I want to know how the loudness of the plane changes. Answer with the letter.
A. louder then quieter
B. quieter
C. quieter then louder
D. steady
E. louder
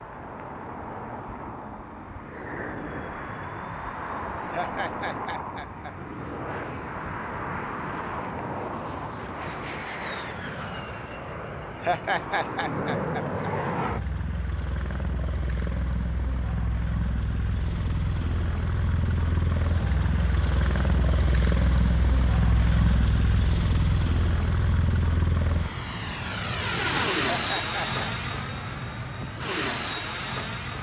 E.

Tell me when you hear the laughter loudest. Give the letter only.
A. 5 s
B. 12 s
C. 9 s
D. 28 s
B.